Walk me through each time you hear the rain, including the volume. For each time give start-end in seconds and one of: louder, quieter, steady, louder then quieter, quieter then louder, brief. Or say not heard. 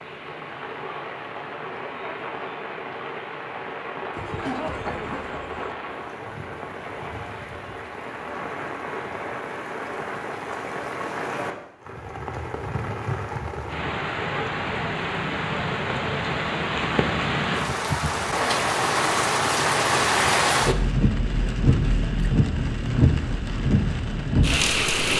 0.0-25.1 louder.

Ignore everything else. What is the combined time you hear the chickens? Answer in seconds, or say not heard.
2 s.